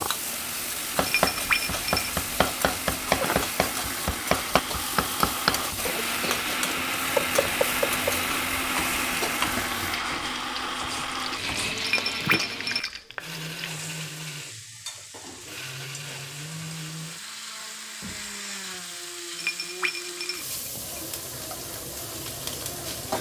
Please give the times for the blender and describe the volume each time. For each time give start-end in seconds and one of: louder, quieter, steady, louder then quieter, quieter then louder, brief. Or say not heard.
0.0-23.1 louder then quieter.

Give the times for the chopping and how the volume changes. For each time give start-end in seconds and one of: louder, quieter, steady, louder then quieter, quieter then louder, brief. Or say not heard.
0.9-12.4 quieter.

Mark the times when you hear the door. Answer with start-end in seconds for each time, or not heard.
18.0-18.8.